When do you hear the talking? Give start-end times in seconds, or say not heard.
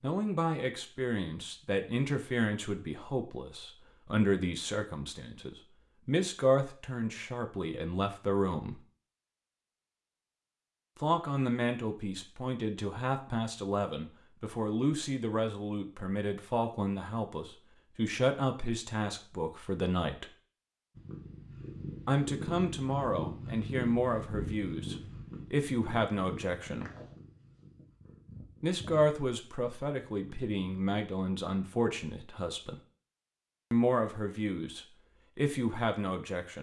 0.0-8.8, 10.9-20.3, 22.1-26.9, 28.6-32.8, 33.7-36.5.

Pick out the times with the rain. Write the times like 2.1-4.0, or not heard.
not heard.